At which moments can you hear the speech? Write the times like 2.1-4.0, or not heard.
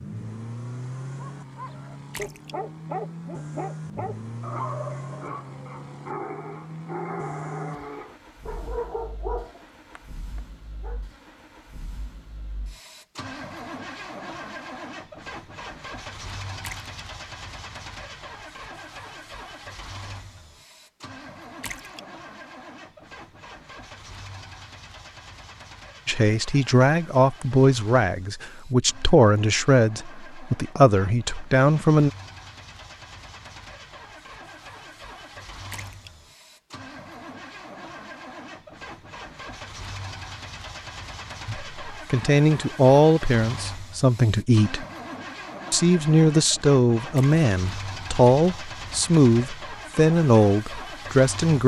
26.1-32.1, 41.5-44.9, 45.7-51.6.